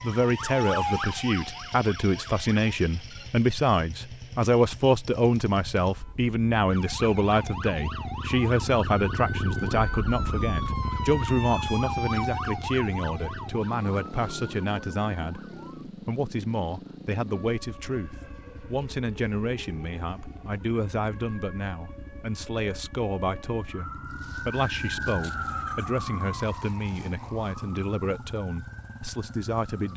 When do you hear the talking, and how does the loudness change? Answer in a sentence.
You can hear the talking from 0.0 to 29.9 s, getting quieter.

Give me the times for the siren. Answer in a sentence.
The siren can be heard from 0.0 to 2.6 s, from 6.7 to 15.8 s and from 17.2 to 29.9 s.